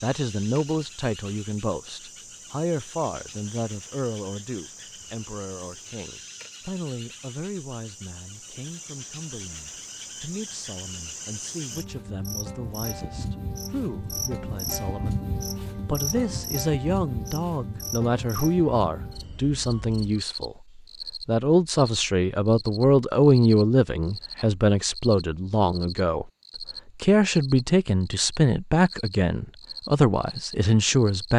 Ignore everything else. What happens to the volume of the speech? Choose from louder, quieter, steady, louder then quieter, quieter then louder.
quieter then louder.